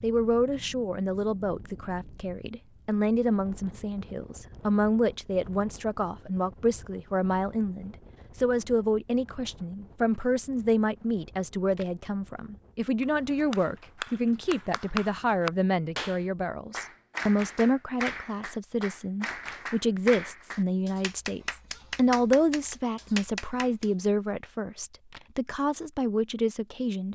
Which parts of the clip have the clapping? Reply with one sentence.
You can hear the clapping from 13.0 to 23.9 s.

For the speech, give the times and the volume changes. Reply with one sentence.
You can hear the speech from 0.0 to 27.1 s, at a steady volume.